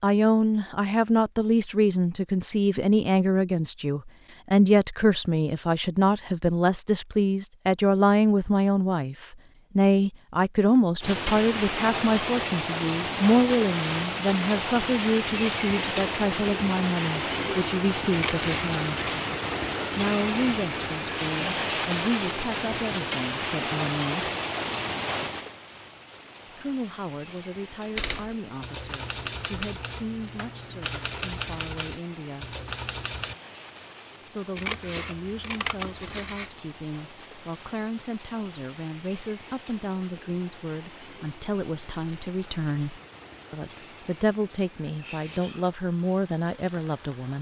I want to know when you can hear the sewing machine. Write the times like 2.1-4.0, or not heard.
not heard.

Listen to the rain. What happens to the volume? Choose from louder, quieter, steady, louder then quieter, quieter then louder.
quieter.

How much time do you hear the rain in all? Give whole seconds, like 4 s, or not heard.
36 s.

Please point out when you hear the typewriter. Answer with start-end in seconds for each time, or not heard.
27.9-33.4.